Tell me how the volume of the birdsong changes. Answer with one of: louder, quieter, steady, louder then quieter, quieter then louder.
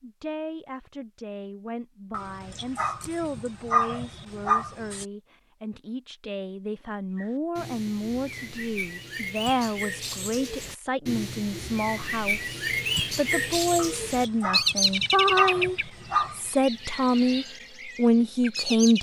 louder then quieter.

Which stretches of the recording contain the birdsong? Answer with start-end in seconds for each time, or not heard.
7.2-18.9.